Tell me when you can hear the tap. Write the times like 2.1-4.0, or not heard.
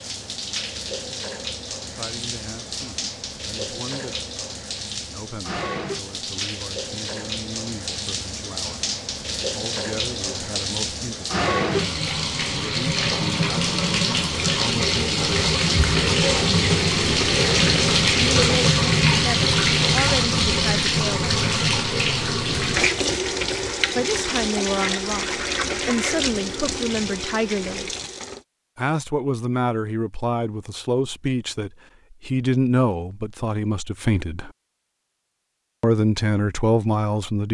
0.0-28.4.